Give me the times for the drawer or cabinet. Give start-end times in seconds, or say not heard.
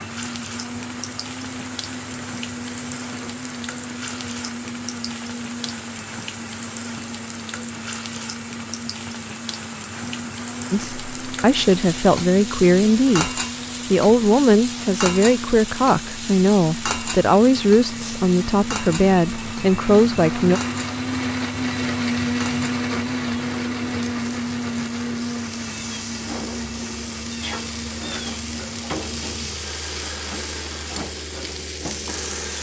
not heard.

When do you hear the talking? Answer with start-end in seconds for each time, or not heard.
10.7-20.6.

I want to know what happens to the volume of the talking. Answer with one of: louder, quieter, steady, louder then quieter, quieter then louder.
steady.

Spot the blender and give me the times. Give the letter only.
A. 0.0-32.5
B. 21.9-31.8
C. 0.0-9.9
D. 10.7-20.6
A.